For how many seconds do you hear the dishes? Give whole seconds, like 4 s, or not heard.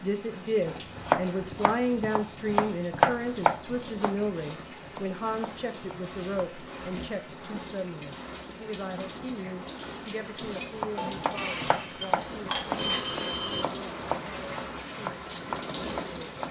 3 s.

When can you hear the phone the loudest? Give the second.
13 s.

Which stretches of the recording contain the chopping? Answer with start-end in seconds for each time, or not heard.
0.7-6.5, 10.8-16.4.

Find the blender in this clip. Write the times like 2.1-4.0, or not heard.
not heard.